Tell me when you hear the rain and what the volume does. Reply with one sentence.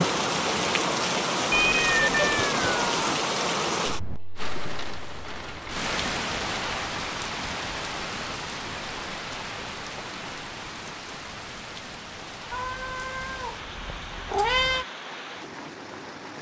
You can hear the rain from 0.0 to 16.3 s, getting quieter.